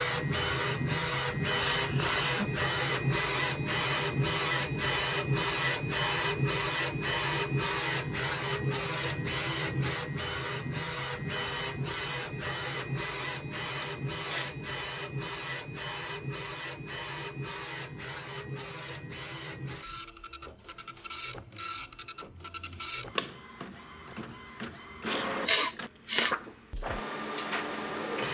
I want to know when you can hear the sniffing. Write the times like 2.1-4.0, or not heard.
1.6-2.5, 13.8-14.6, 25.4-26.4.